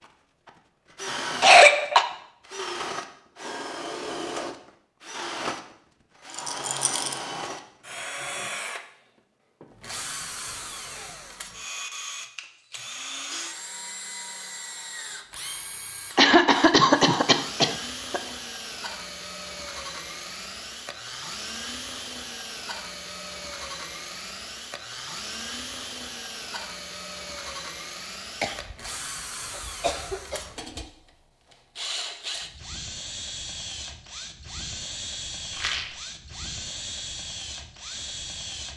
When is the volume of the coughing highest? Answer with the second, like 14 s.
2 s.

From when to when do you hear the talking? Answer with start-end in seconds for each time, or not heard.
not heard.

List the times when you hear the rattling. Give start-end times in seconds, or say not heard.
6.3-7.2, 35.5-36.0.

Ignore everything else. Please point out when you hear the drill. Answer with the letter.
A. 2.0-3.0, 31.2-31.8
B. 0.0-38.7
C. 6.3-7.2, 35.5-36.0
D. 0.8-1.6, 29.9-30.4
B.